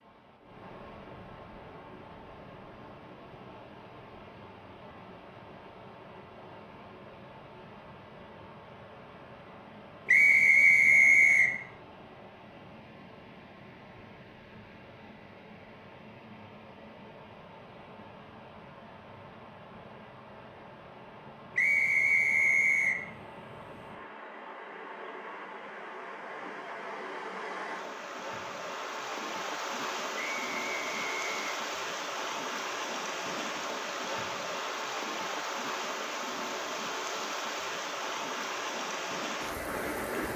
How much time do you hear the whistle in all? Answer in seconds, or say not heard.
4 s.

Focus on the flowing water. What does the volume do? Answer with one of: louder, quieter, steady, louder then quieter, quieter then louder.
louder.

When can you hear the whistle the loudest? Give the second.
11 s.